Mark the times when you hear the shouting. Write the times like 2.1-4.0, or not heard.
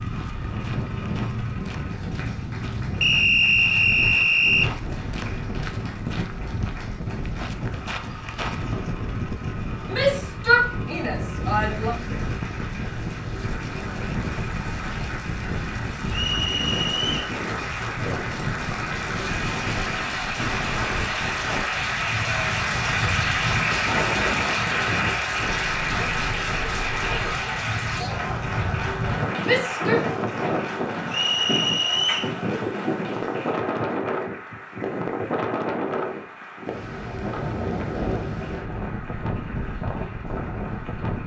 9.9-11.9, 29.4-30.1.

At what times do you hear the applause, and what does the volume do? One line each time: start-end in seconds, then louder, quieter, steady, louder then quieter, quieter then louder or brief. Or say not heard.
0.0-41.2 louder then quieter.